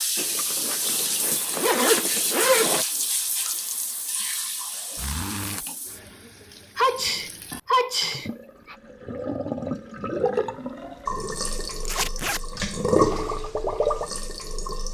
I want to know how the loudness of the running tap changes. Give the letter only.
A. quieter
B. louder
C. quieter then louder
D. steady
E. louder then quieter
C.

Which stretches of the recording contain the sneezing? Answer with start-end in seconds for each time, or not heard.
6.8-8.8.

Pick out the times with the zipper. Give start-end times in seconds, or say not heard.
0.1-2.9, 5.0-5.7, 11.8-12.4.